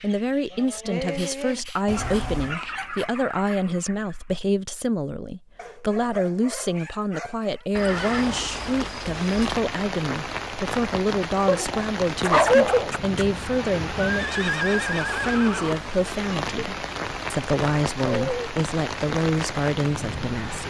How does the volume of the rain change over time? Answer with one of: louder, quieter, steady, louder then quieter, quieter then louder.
steady.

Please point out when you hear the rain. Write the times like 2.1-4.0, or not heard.
7.8-20.6.